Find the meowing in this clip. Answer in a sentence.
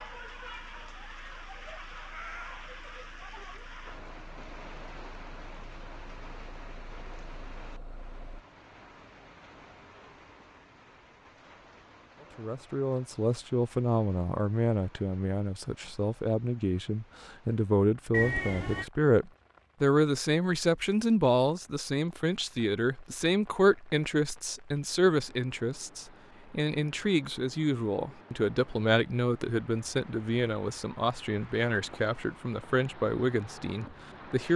You can hear the meowing from 2.0 to 2.6 s and from 18.1 to 18.9 s.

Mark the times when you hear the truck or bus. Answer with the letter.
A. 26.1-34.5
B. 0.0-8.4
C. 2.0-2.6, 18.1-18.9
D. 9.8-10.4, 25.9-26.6
B.